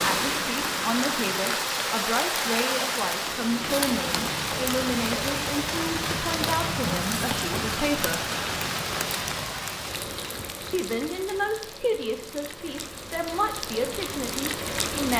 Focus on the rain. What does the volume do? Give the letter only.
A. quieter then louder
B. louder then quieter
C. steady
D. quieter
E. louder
D.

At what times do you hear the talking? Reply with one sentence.
The talking can be heard from 0.0 to 8.2 s and from 10.7 to 15.1 s.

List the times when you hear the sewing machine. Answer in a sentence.
The sewing machine can't be heard in this clip.